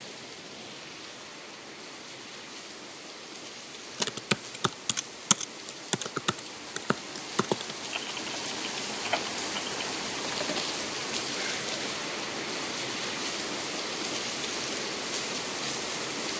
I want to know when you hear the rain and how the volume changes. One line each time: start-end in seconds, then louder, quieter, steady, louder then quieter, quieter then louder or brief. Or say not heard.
0.0-16.3 louder.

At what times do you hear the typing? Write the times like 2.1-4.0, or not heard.
4.0-10.7.